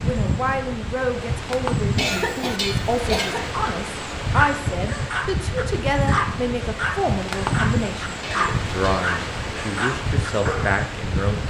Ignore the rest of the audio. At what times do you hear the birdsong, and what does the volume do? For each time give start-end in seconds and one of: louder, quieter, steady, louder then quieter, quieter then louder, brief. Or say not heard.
not heard.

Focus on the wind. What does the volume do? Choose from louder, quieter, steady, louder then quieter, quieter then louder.
steady.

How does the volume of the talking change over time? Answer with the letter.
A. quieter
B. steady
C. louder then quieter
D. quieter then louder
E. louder
B.